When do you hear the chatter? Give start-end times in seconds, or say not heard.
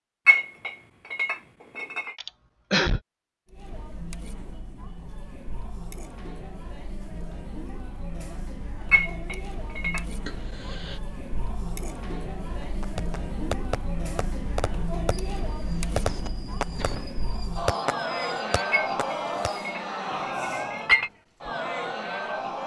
3.5-22.6.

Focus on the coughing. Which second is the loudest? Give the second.
3 s.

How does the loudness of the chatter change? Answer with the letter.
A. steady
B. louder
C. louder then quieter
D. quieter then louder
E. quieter
B.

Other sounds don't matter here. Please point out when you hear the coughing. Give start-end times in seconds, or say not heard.
2.1-3.0, 10.2-11.0, 15.9-17.1.